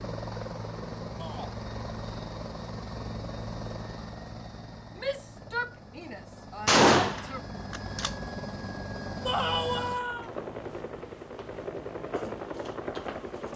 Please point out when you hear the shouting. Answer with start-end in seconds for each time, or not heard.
1.1-1.6, 5.0-7.4, 9.2-10.3.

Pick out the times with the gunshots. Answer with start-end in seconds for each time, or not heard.
6.7-8.1.